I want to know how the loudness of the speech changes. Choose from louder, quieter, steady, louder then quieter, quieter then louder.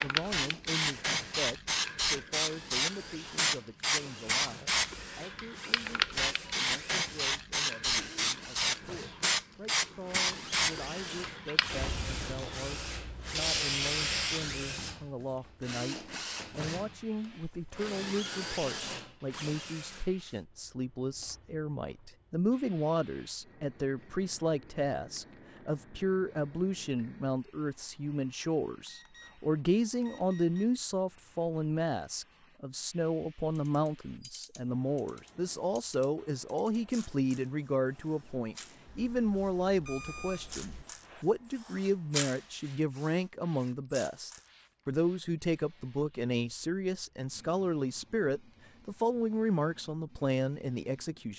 louder.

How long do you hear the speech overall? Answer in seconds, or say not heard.
51 s.